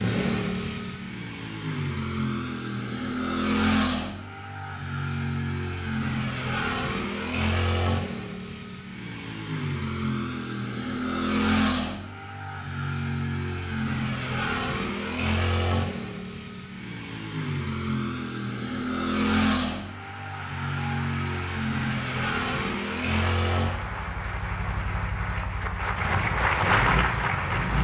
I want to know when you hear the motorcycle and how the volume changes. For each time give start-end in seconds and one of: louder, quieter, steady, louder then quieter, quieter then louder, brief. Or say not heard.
0.0-27.7 steady.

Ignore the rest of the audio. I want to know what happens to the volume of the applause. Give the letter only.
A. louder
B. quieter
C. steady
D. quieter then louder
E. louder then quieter
A.